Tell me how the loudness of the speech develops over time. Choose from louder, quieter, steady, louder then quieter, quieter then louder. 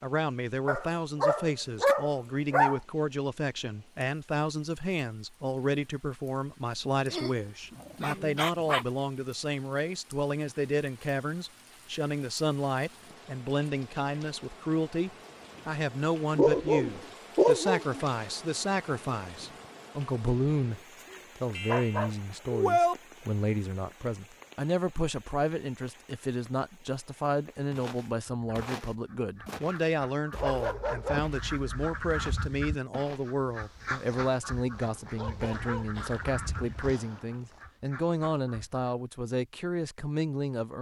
steady.